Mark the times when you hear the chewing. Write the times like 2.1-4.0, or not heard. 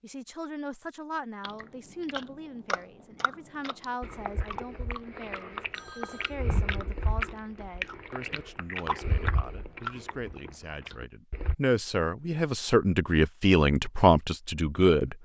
1.4-11.6.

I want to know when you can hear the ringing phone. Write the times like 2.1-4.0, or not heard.
5.7-6.4.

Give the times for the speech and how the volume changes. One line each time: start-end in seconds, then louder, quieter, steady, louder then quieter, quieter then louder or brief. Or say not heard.
0.0-15.1 louder.